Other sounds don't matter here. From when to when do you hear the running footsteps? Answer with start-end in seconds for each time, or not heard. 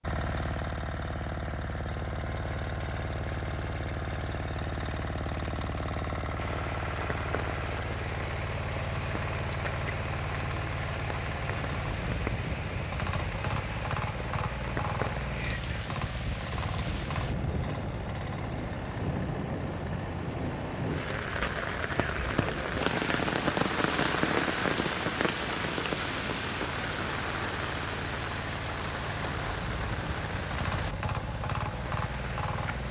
not heard.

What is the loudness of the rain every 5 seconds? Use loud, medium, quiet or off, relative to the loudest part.
off, medium, medium, medium, loud, loud, medium.